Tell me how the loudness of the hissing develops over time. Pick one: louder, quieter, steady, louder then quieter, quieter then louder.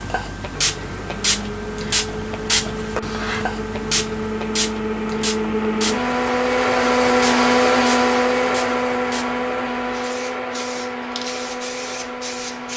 quieter.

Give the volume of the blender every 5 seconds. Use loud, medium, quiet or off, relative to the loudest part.
medium, loud, medium.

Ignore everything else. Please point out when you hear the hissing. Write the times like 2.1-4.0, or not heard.
0.0-12.7.